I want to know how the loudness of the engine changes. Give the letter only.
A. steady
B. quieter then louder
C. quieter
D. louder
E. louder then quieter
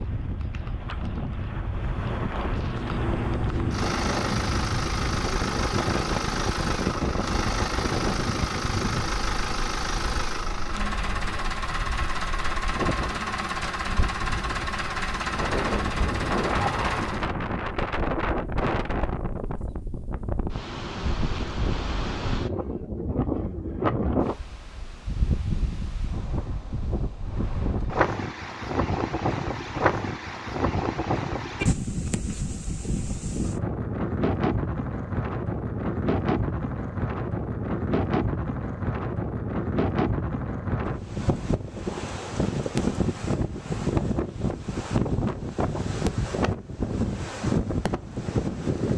A.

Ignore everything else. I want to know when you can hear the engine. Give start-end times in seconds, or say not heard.
2.6-17.2.